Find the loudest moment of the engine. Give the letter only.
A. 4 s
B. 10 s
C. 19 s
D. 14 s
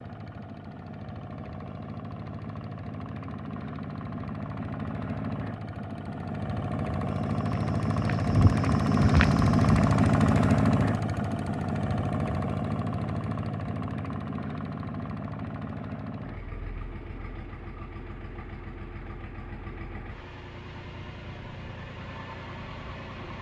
B.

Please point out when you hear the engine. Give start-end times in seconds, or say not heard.
0.0-23.3.